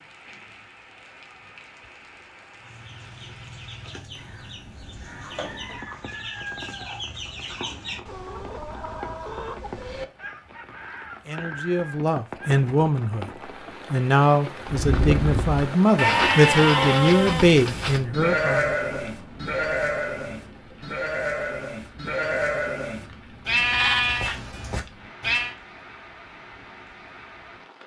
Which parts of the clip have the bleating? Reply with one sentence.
The bleating can be heard from 14.7 to 25.6 s.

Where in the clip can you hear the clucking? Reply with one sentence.
You can hear the clucking from 2.5 to 12.7 s.